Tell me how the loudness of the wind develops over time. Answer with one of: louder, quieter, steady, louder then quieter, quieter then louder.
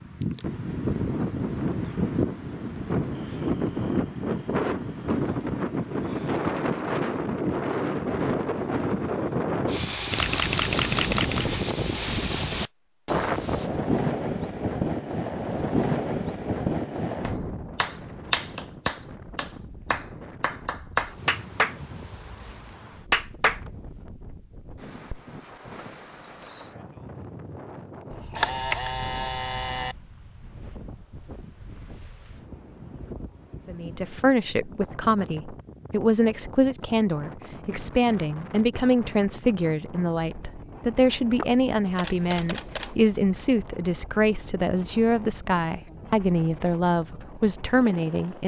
quieter.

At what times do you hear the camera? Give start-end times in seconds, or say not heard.
10.1-11.6, 28.1-29.9, 41.4-43.0.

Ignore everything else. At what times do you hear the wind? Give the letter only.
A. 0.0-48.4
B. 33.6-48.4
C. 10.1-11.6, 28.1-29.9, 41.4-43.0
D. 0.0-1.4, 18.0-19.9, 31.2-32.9
A.